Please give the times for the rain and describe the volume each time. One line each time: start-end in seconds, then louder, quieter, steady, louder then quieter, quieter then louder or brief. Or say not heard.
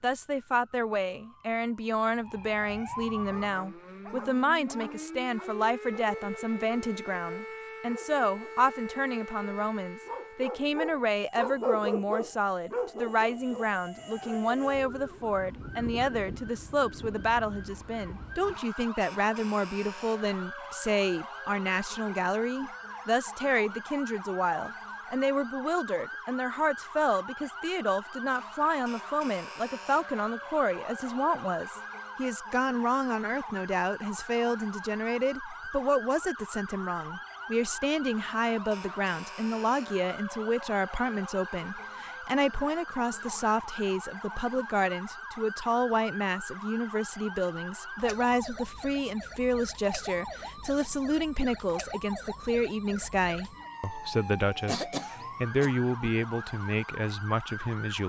not heard.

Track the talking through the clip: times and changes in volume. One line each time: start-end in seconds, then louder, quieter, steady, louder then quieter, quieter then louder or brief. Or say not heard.
0.0-58.0 steady.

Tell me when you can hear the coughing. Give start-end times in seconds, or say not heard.
54.6-55.8.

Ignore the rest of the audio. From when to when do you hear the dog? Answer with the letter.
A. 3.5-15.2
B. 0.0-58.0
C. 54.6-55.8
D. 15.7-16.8
A.